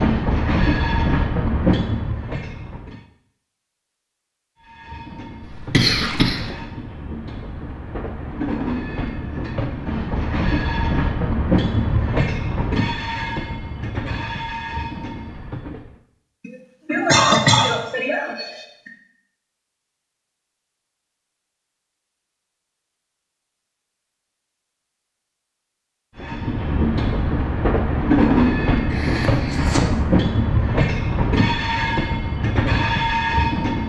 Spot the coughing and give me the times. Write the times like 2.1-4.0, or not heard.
5.4-6.5, 16.4-18.9, 28.9-29.9.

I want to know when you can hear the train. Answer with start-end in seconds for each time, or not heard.
0.0-3.0, 4.6-16.0, 26.1-33.8.